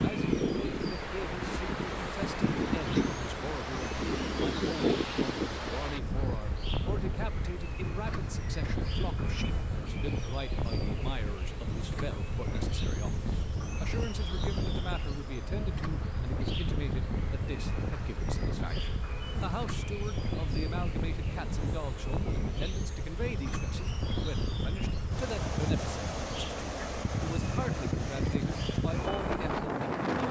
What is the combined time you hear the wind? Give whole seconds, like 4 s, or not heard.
30 s.